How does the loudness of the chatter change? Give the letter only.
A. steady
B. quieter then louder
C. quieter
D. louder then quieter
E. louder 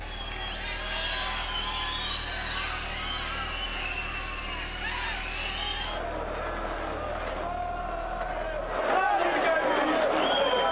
E.